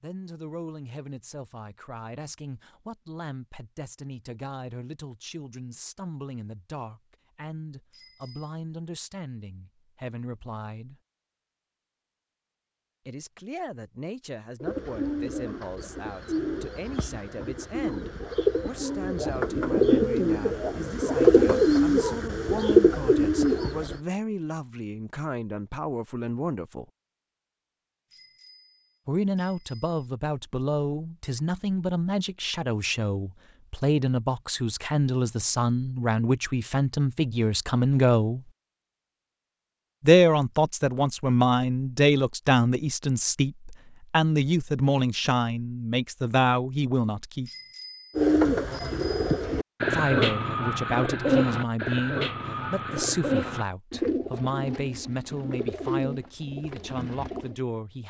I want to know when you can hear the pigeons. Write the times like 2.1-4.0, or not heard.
14.6-24.0, 48.1-57.5.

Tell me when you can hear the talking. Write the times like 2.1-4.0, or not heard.
0.0-11.0, 13.1-26.9, 29.1-38.5, 40.0-47.5, 49.9-58.0.